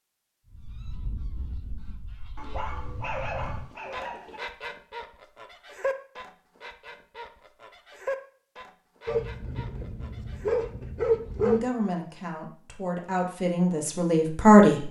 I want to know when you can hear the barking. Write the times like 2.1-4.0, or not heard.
2.4-4.4, 9.1-11.7.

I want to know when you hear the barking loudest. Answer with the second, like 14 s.
11 s.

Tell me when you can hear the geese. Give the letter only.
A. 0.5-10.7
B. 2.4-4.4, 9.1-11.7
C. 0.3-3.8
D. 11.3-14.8
A.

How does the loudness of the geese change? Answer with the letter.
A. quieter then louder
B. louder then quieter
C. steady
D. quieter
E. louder
B.